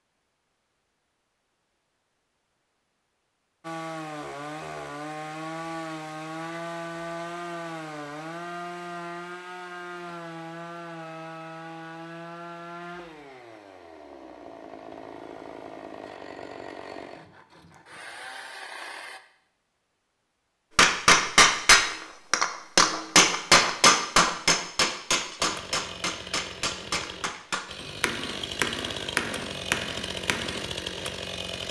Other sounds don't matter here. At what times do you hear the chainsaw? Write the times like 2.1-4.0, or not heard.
3.6-19.2, 25.4-31.6.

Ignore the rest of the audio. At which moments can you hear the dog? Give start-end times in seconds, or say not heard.
not heard.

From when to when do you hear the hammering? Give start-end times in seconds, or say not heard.
20.8-30.7.